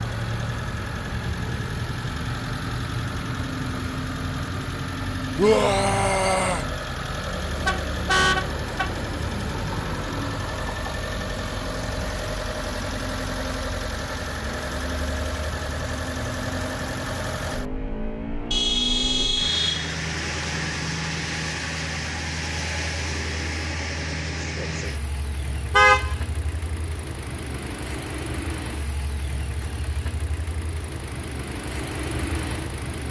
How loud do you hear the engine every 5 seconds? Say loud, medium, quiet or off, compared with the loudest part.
loud, loud, loud, loud, loud, medium, loud.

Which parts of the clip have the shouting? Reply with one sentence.
The shouting can be heard from 5.3 to 6.7 s.